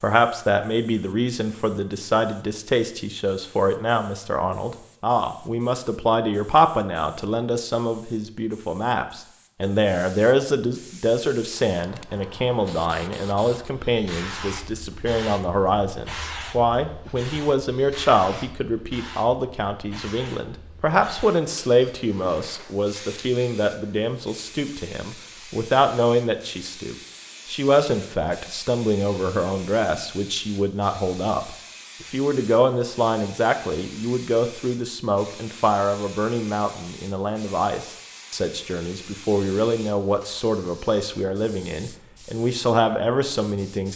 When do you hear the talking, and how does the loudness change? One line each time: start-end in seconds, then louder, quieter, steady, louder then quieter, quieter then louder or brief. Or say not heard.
0.0-43.9 steady.